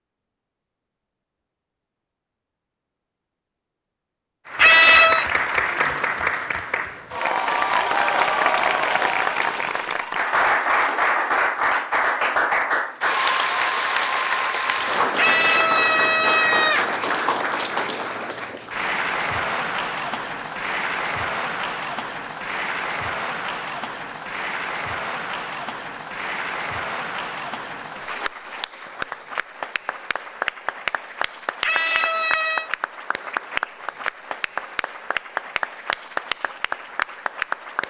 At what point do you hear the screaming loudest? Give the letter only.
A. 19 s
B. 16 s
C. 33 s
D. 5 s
D.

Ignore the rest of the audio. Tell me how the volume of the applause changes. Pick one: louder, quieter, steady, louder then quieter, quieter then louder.
quieter.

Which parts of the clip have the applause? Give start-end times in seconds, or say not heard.
4.5-37.8.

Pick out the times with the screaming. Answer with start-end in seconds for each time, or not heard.
4.5-5.2, 15.2-16.9, 31.6-32.7.